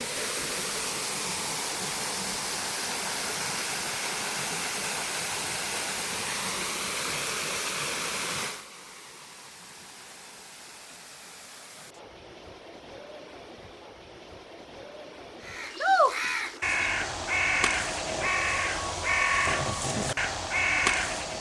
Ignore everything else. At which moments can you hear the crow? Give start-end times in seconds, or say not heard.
15.4-21.3.